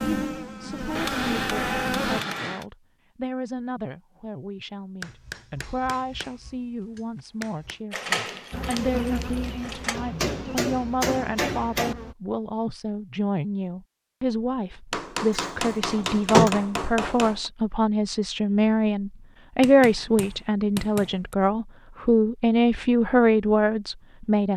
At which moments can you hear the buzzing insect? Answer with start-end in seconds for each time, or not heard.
0.0-2.2, 8.5-12.2.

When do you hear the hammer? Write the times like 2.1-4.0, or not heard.
0.9-2.6, 5.0-7.8, 9.9-11.9, 14.9-17.5, 19.6-21.4.